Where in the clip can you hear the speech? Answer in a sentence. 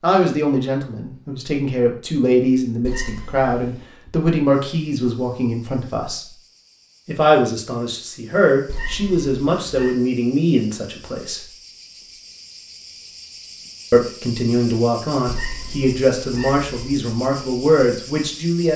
You can hear the speech from 0.0 to 6.3 s, from 7.0 to 11.4 s and from 13.9 to 18.7 s.